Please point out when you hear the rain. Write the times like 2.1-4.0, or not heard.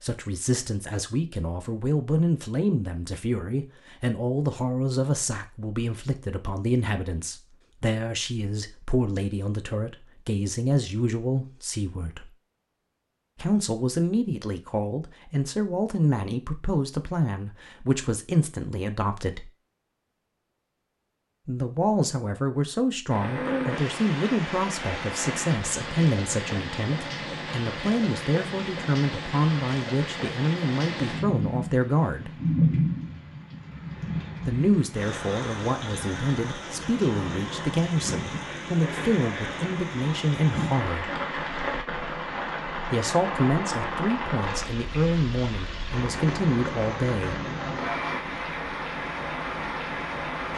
23.1-50.5.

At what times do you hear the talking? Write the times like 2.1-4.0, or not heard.
0.0-12.3, 13.3-19.5, 21.4-32.3, 34.5-41.0, 42.9-47.4.